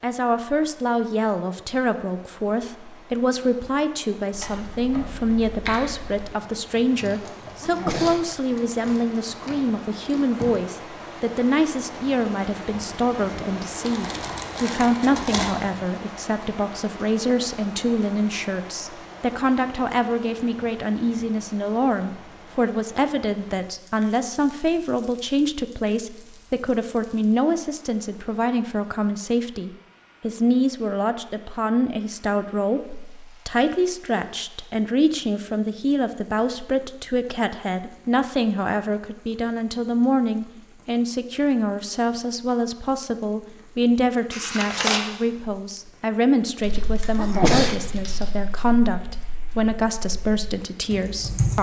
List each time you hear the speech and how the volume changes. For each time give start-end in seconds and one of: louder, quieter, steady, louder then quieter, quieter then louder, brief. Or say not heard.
0.0-51.5 steady.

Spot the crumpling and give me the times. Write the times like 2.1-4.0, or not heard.
13.8-15.6, 44.3-45.0.